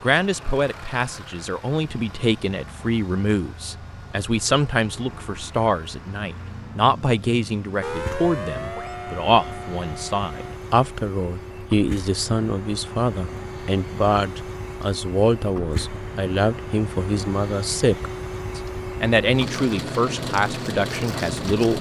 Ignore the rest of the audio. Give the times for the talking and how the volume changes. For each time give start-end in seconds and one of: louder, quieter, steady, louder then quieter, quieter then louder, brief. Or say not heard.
0.0-21.7 steady.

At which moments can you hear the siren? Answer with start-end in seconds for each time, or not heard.
7.8-10.6.